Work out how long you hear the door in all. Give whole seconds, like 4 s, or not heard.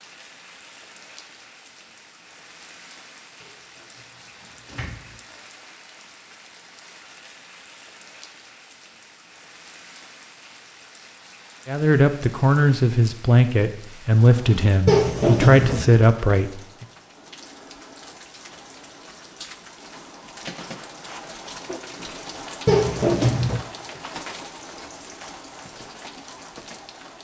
4 s.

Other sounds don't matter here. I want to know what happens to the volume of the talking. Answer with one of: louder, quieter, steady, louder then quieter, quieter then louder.
steady.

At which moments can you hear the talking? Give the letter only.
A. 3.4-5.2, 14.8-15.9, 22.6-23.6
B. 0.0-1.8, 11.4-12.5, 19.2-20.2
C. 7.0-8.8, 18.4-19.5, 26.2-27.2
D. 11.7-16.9
D.